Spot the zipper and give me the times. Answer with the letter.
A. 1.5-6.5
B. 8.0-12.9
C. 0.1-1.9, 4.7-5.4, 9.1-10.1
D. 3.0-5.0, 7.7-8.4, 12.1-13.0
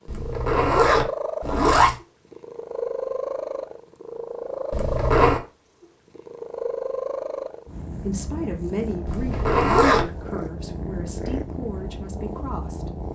C.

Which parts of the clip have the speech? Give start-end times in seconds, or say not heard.
8.0-12.9.